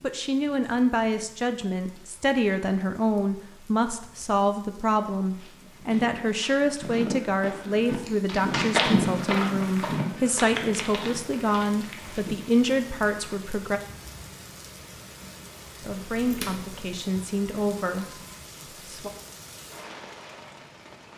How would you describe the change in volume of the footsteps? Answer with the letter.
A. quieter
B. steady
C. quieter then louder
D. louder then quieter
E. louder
D.